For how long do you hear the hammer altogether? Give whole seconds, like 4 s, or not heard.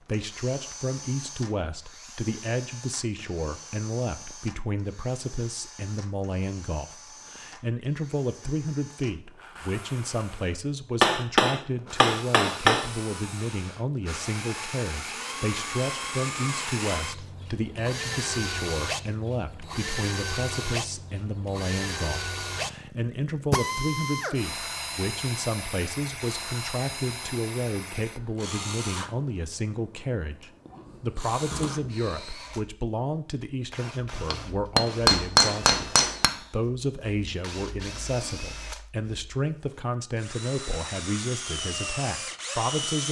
4 s.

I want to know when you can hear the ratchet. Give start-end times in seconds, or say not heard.
not heard.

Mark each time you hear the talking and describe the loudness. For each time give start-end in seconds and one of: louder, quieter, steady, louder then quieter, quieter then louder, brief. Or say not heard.
0.0-43.0 steady.